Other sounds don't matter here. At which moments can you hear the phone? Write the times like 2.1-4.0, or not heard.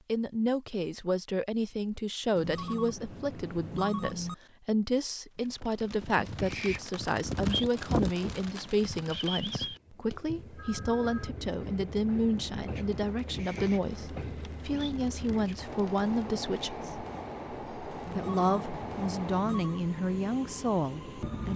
2.4-4.3, 10.1-11.3, 18.1-19.8.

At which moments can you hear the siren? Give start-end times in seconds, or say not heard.
not heard.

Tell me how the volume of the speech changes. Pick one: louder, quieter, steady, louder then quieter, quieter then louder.
steady.